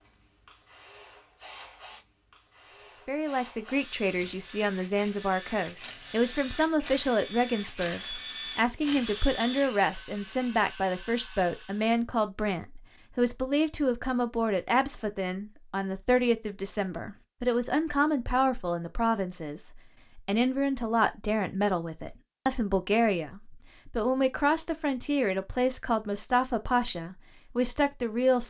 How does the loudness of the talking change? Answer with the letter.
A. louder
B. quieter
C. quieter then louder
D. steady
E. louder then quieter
D.